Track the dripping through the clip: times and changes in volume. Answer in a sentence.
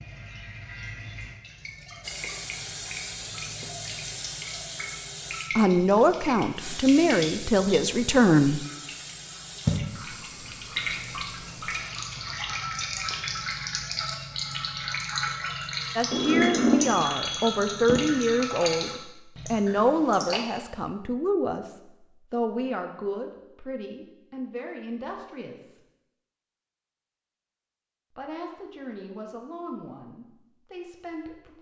You can hear the dripping from 0.0 to 20.4 s, getting louder.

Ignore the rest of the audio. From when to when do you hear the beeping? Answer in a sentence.
You can hear the beeping from 16.1 to 18.0 s.